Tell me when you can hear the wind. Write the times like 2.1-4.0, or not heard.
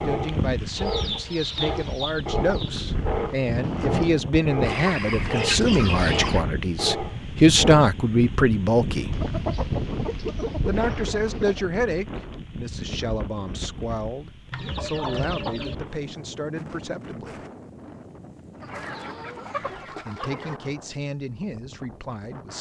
0.0-22.5.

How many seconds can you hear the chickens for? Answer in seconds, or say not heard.
10 s.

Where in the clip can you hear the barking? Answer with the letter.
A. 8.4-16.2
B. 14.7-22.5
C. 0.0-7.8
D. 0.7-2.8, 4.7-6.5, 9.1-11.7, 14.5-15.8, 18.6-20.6
C.